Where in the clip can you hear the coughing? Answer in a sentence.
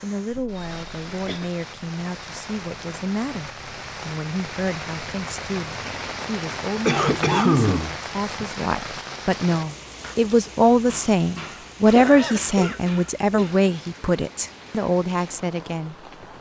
The coughing can be heard from 0.3 to 1.5 s, from 6.8 to 8.4 s and from 11.9 to 12.8 s.